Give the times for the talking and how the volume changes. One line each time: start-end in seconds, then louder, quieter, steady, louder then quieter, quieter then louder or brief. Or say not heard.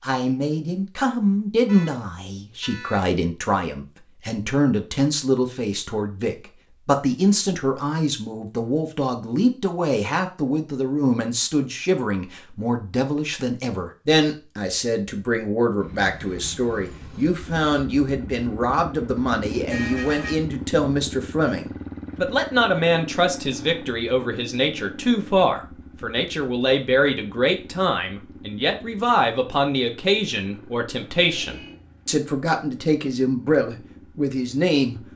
0.0-35.0 steady.